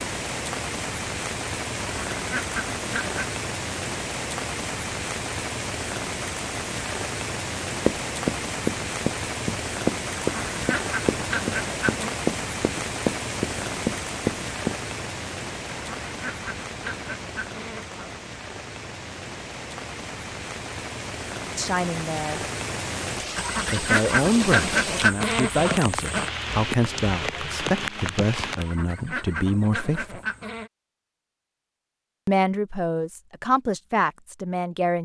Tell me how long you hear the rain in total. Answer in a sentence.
You can hear the rain for 29 seconds altogether.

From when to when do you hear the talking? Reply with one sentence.
The talking can be heard from 21.6 to 22.4 s, from 23.7 to 30.2 s and from 32.2 to 35.0 s.